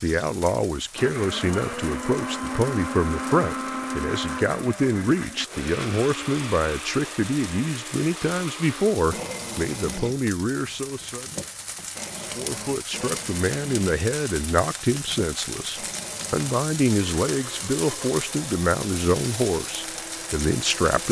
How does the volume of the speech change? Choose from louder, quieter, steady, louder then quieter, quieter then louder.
steady.